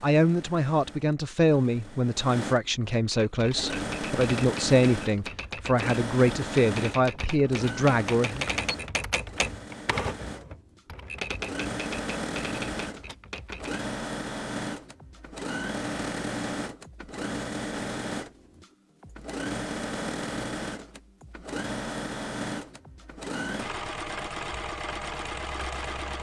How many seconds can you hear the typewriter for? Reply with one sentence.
The typewriter can be heard for 11 seconds in total.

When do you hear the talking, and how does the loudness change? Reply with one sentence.
The talking can be heard from 0.0 to 8.4 s, at a steady volume.